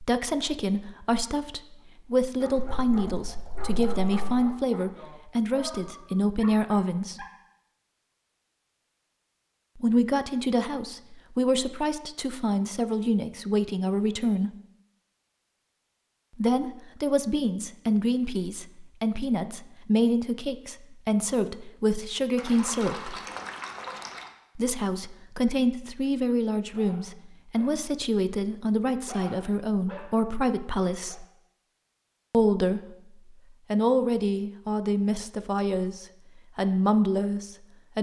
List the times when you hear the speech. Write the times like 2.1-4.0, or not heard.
0.0-7.2, 9.8-14.6, 16.4-23.2, 24.6-31.2, 32.3-37.9.